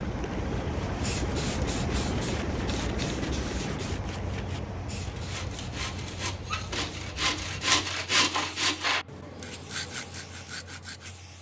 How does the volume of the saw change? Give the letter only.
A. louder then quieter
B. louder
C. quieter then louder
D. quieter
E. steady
A.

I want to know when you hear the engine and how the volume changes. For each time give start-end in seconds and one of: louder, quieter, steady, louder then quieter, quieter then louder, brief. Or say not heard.
0.0-11.3 quieter.